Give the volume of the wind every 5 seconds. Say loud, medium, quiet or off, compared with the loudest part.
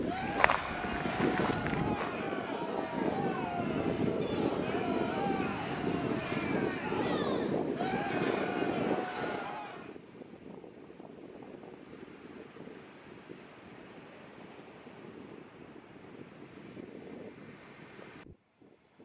loud, loud, quiet, quiet.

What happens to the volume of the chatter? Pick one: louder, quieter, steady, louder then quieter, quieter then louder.
steady.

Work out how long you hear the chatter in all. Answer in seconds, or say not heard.
10 s.